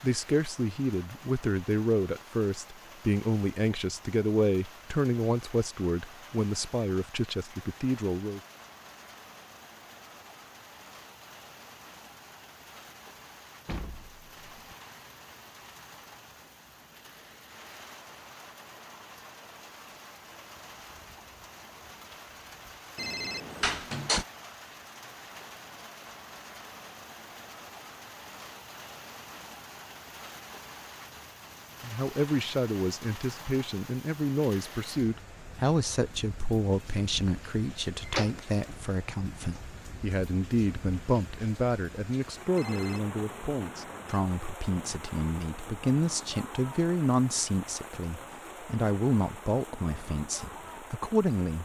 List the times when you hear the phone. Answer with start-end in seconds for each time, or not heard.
22.9-23.8, 42.5-44.2.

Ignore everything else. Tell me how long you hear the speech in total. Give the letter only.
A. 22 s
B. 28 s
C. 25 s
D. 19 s
B.